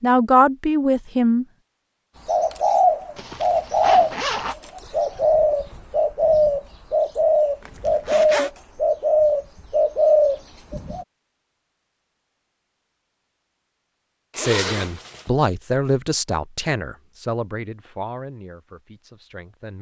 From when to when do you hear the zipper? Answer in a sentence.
You can hear the zipper from 3.1 to 4.5 s, from 7.6 to 8.5 s and from 14.3 to 15.3 s.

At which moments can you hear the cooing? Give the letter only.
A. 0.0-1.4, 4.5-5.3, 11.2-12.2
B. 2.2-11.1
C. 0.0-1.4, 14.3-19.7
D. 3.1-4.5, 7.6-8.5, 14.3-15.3
B.